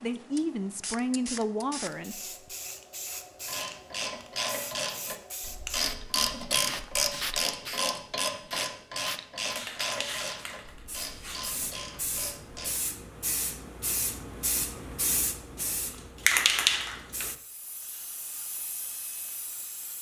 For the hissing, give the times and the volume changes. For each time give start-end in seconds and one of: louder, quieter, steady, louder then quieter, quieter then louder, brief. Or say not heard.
0.0-19.9 louder.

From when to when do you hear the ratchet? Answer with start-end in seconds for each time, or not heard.
3.5-12.7.